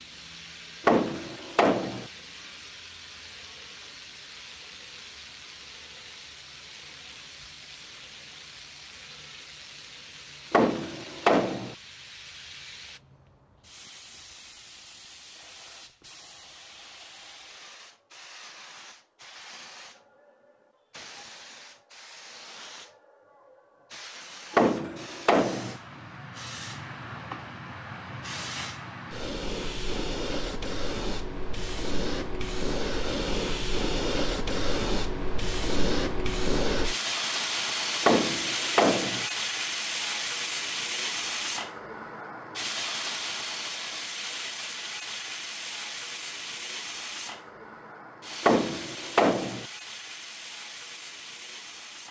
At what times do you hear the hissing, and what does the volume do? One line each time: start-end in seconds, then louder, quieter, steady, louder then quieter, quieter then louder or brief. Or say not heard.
0.0-52.0 louder then quieter.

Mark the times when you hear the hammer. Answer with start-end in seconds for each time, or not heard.
0.8-2.0, 10.5-11.8, 24.6-25.8, 38.0-39.2, 48.4-49.6.